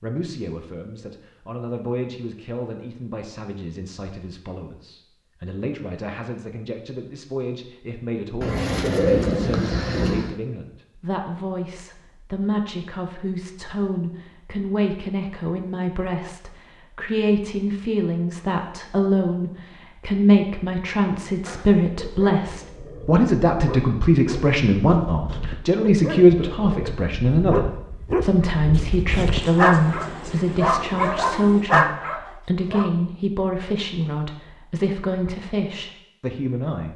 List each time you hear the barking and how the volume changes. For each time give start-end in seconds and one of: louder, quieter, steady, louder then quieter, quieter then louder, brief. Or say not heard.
21.4-32.9 louder.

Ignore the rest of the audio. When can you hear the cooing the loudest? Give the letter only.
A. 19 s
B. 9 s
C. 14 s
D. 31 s
B.